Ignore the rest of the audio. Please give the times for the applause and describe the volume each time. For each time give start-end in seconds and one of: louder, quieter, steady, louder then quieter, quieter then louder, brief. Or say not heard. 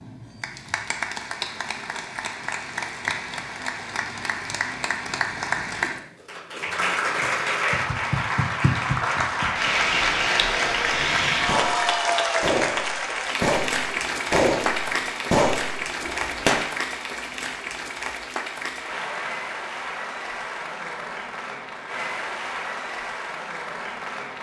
0.0-24.3 louder then quieter.